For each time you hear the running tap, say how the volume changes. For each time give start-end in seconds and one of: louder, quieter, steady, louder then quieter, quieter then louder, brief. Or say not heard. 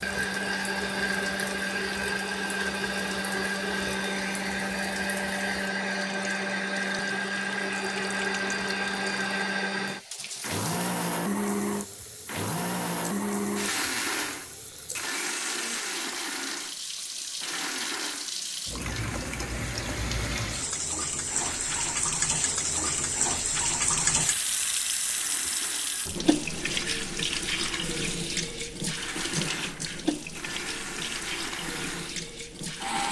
0.0-33.0 louder.